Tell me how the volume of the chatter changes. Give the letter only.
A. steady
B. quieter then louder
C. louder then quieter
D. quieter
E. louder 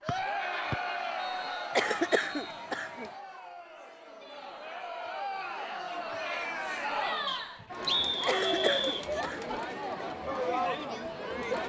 B.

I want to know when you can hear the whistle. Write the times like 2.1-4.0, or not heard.
0.1-2.6, 7.2-9.1.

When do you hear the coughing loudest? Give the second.
2 s.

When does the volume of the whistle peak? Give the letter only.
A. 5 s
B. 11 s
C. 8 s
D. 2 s
C.